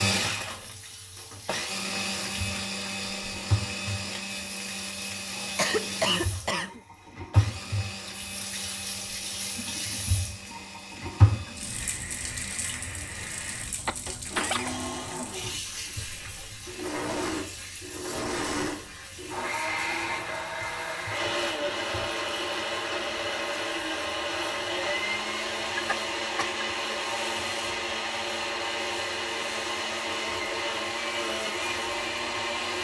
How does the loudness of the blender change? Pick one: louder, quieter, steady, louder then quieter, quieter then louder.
quieter then louder.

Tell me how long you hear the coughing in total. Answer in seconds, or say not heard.
3 s.